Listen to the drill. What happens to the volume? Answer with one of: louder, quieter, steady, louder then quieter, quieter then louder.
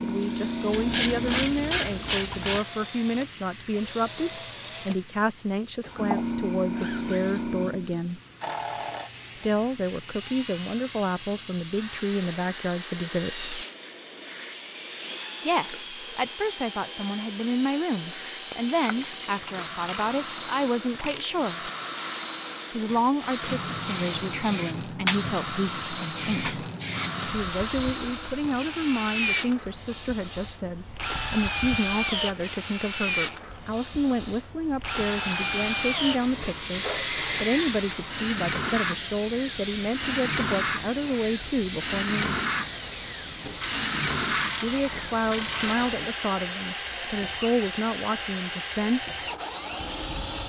louder.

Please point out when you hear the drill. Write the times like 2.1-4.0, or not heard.
0.0-50.4.